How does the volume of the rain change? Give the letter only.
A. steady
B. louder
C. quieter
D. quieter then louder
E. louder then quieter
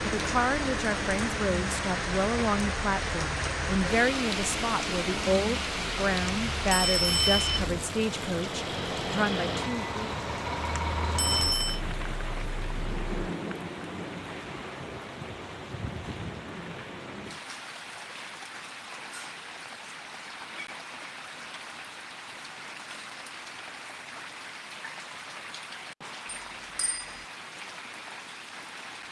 C.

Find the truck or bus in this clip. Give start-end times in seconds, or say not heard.
0.0-13.3.